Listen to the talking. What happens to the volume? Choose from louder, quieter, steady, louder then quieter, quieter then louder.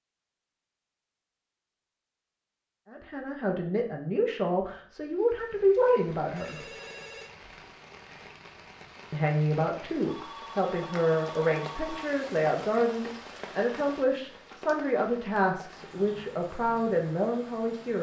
steady.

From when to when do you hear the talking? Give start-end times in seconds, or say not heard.
2.9-6.7, 9.1-17.9.